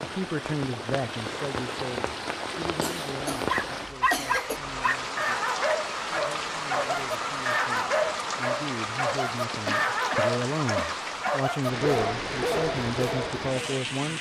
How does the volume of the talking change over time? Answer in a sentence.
The loudness of the talking goes down, then up.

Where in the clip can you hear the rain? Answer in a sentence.
The rain can be heard from 0.0 to 14.1 s.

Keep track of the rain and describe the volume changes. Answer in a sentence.
The volume of the rain stays about the same.